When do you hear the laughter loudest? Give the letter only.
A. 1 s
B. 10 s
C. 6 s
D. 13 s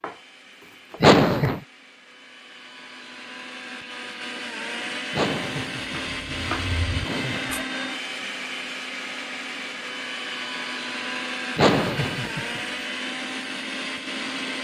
A.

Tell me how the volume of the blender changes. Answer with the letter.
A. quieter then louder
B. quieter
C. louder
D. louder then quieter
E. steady
C.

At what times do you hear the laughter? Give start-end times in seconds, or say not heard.
1.0-1.6, 5.1-6.2, 7.0-7.5, 11.6-12.6.